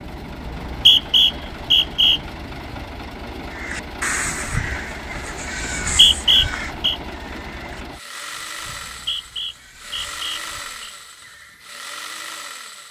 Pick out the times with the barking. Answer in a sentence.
The barking can't be heard in this clip.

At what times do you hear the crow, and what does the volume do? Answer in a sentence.
The crow can be heard from 3.5 to 11.8 s, getting quieter.